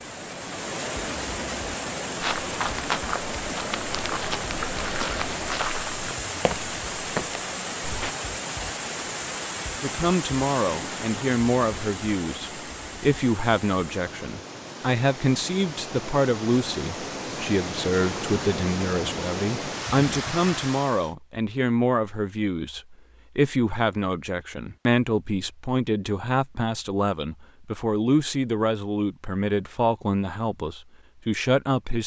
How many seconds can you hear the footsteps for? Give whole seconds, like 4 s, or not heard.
6 s.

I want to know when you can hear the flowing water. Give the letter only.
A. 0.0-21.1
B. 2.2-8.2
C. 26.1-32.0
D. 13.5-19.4
A.